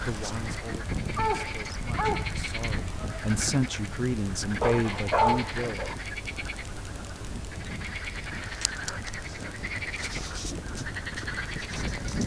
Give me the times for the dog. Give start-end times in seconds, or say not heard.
1.1-2.4, 4.6-6.0, 8.4-10.4.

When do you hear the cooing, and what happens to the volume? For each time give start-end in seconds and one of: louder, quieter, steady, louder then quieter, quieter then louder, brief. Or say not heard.
not heard.